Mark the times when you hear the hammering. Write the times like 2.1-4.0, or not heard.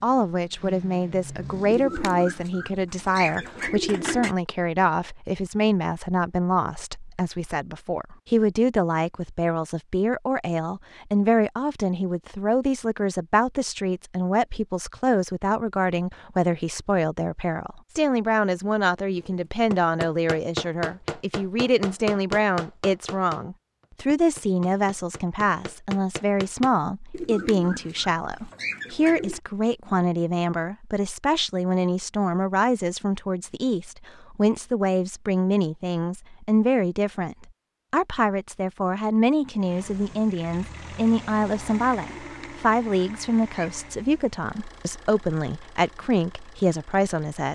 19.1-26.7.